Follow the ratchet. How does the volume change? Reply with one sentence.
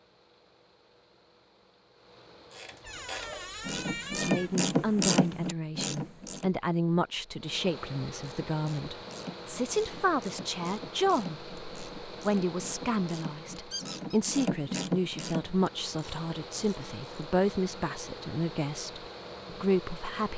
The volume of the ratchet goes down, then up.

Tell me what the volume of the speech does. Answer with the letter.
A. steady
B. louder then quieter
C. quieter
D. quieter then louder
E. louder
A.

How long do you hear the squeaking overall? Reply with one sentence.
You can hear the squeaking for 2 seconds altogether.